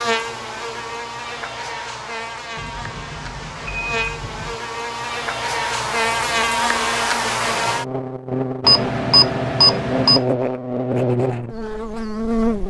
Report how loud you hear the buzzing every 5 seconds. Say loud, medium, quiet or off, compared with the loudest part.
medium, loud, loud.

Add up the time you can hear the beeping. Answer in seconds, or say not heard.
4 s.